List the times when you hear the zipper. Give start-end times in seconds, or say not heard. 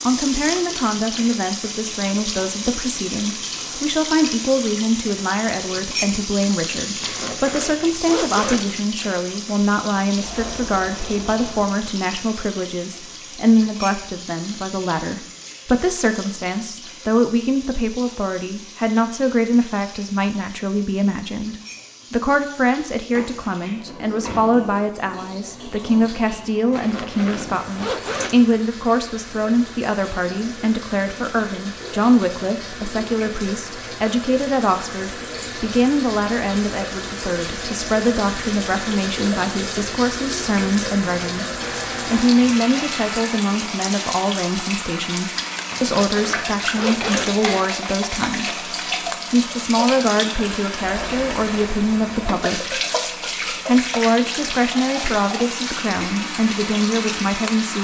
7.0-8.8, 26.7-28.4, 45.7-47.6.